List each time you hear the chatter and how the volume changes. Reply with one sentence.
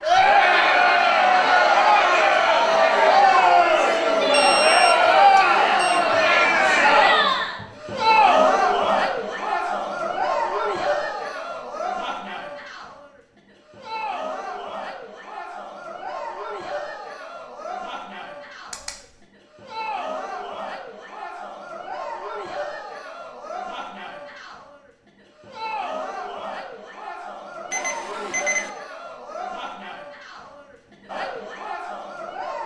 The chatter can be heard from 0.0 to 32.6 s, getting quieter.